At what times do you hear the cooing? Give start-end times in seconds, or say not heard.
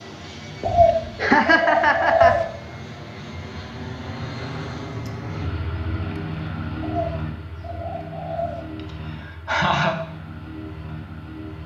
0.6-2.5, 6.8-8.7.